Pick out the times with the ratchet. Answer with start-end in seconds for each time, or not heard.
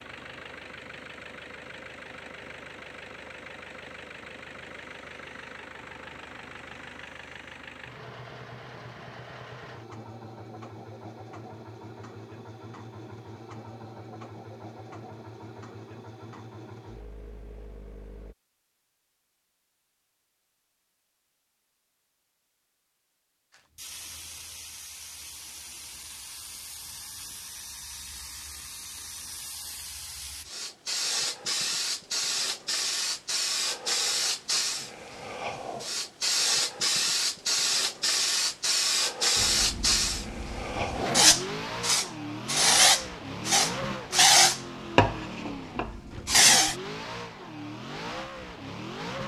not heard.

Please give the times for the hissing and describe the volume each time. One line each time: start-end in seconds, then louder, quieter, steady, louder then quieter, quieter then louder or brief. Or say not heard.
23.8-46.8 louder.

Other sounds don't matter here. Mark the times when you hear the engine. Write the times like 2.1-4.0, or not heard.
0.0-18.4, 39.4-49.2.